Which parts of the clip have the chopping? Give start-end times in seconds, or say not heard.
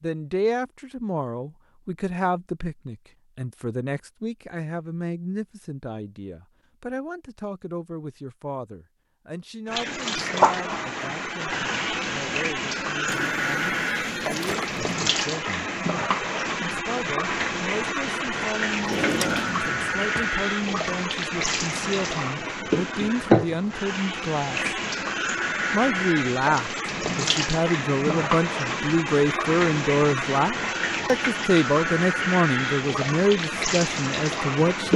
not heard.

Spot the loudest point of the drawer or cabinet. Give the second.
19 s.